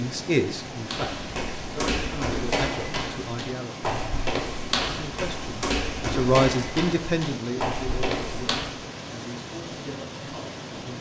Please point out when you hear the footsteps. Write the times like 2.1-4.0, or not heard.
0.8-8.8.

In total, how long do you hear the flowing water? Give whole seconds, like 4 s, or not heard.
11 s.